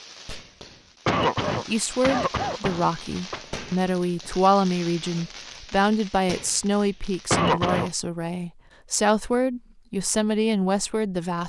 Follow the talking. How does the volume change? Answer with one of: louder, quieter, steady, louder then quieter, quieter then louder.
steady.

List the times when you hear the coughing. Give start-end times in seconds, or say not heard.
1.1-3.4, 7.3-7.9.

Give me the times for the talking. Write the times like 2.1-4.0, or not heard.
1.6-11.4.